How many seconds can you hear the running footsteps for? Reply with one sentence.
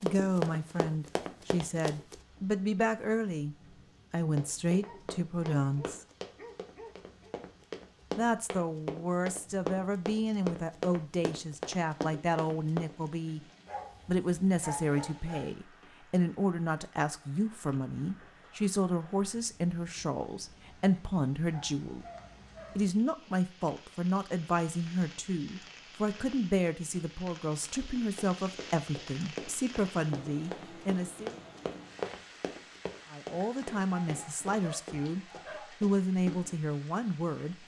You can hear the running footsteps for 20 seconds altogether.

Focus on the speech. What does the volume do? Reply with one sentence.
The loudness of the speech stays about the same.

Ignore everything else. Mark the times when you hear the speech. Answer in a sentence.
The speech can be heard from 0.0 to 6.0 s, from 8.2 to 13.4 s, from 14.1 to 22.1 s, from 22.8 to 31.4 s and from 33.1 to 37.6 s.